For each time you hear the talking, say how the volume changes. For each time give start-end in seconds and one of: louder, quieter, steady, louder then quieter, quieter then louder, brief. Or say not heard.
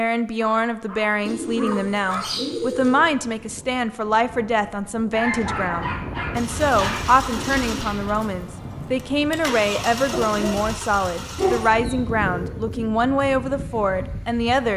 0.0-14.7 steady.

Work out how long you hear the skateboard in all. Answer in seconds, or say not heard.
not heard.